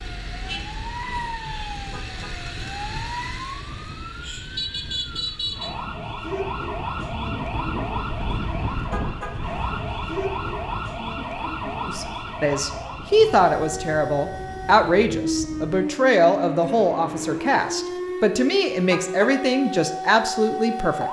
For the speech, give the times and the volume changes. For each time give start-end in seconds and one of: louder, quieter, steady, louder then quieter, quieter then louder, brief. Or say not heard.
11.8-21.0 steady.